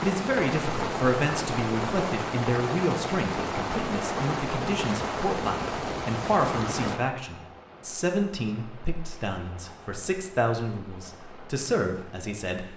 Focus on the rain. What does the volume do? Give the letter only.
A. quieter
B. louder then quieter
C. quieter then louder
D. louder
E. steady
A.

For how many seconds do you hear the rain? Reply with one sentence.
You can hear the rain for 13 seconds altogether.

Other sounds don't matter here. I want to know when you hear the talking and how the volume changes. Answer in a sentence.
The talking can be heard from 0.0 to 12.7 s, at a steady volume.